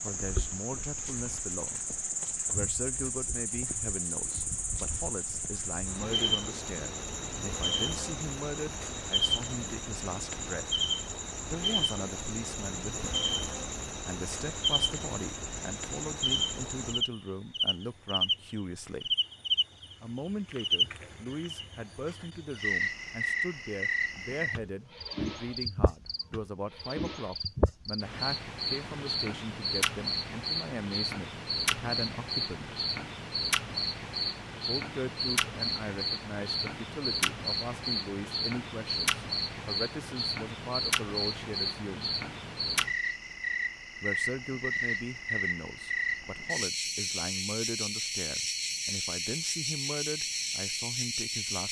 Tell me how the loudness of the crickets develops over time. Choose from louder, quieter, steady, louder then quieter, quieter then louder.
steady.